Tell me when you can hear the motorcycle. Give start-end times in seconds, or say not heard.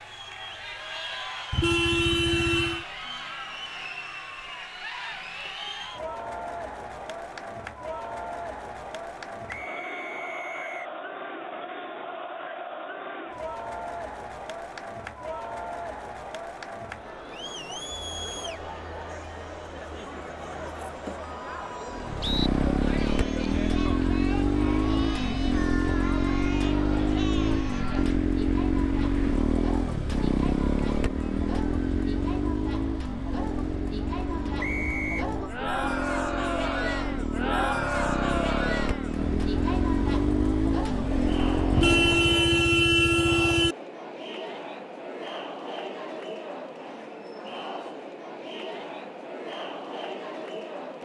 21.9-42.1.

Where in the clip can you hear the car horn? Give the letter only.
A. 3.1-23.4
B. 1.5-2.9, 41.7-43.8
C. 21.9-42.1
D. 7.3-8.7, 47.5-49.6
B.